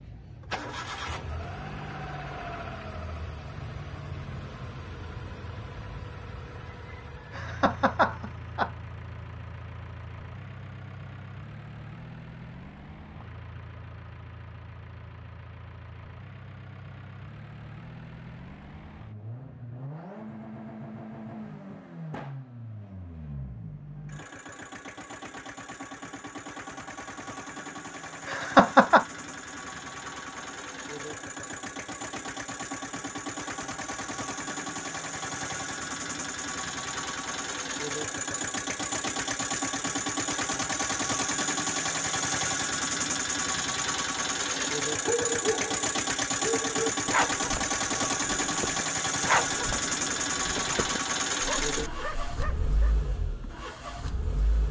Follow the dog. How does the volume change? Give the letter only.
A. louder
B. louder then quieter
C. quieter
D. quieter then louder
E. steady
C.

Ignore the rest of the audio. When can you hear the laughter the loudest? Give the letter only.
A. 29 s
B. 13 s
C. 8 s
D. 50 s
A.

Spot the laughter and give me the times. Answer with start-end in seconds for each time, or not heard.
7.3-8.7, 28.2-29.1.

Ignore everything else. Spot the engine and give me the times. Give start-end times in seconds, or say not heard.
0.0-54.6.